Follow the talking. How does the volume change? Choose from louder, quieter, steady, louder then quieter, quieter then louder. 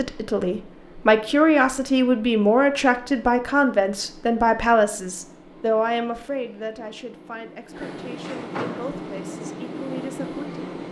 quieter.